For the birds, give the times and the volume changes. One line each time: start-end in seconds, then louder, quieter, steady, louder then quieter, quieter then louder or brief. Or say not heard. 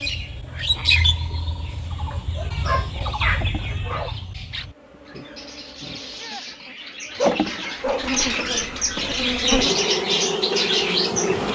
0.0-11.5 quieter then louder.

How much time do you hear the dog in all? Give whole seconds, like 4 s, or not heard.
3 s.